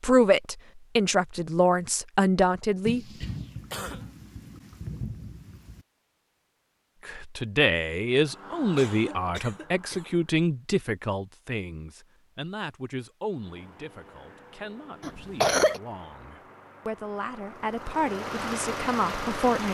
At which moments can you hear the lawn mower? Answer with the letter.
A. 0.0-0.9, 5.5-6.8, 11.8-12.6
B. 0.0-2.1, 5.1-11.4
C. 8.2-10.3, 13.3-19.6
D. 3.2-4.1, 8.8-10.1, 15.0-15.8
C.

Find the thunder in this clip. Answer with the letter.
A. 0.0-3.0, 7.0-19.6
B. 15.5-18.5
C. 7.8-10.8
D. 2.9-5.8
D.